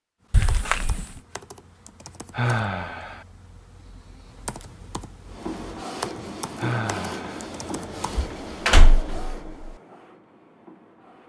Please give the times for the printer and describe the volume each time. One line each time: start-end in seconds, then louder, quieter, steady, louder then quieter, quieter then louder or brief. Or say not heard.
5.2-11.2 quieter.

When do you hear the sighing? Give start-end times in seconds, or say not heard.
2.3-3.2, 6.5-7.5.